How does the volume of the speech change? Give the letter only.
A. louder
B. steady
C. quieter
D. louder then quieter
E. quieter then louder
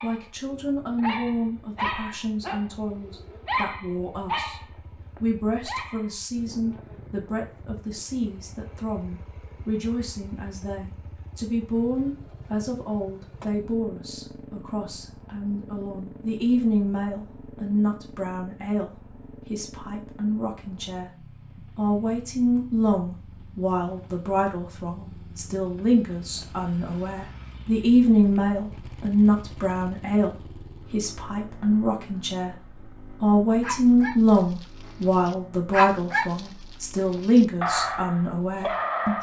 A.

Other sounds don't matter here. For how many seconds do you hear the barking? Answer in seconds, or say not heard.
13 s.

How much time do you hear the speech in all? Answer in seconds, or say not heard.
37 s.